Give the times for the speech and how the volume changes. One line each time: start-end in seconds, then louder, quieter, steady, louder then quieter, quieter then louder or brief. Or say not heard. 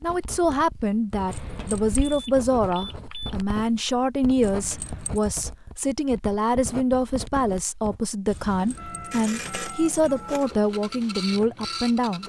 0.0-12.2 steady.